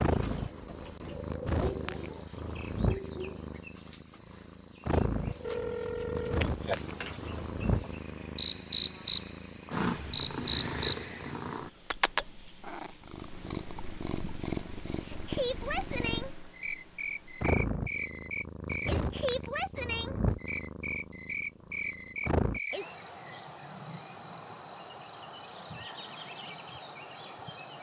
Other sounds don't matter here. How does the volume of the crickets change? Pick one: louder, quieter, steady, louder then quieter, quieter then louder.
steady.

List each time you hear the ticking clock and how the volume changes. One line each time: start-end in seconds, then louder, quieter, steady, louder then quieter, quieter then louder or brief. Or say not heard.
not heard.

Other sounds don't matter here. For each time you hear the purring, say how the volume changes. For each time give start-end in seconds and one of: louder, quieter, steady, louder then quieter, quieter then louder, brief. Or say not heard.
0.0-22.6 steady.